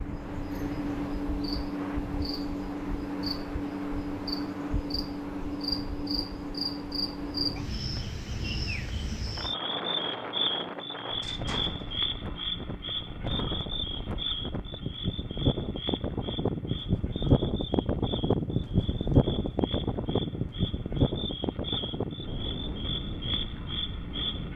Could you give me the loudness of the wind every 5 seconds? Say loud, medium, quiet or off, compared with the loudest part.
quiet, quiet, medium, loud, medium.